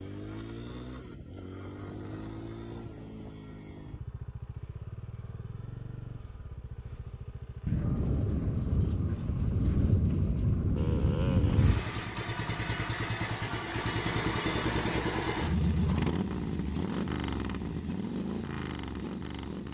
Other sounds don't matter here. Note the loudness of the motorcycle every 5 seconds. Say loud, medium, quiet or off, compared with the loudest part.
medium, quiet, loud, loud.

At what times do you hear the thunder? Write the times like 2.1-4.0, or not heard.
7.7-11.8.